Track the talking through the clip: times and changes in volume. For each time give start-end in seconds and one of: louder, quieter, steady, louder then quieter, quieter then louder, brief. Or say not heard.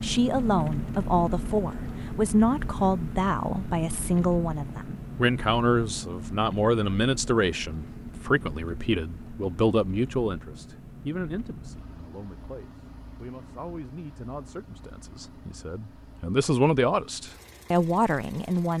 0.0-18.7 quieter then louder.